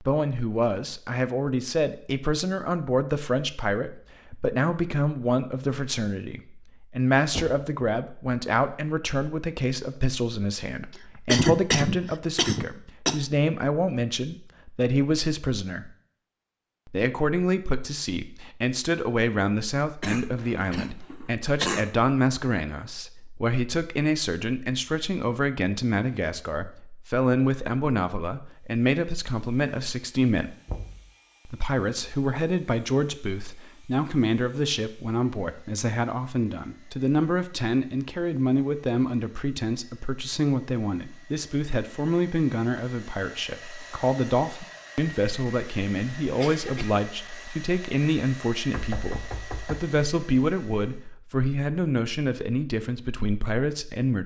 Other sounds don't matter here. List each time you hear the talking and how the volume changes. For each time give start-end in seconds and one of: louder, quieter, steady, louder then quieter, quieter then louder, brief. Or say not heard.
0.0-15.9 steady
16.9-30.6 steady
31.4-54.2 steady.